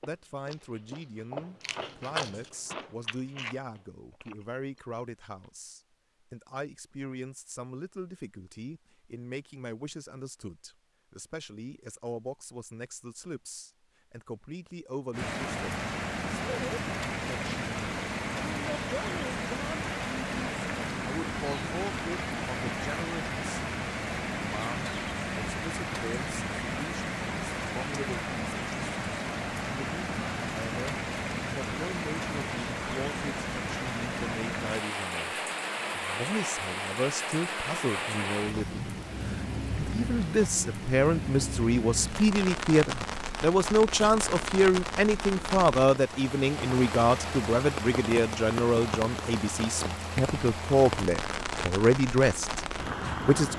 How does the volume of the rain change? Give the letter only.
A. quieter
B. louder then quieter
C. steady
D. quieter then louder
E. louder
C.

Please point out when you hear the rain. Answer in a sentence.
The rain can be heard from 15.1 to 53.5 s.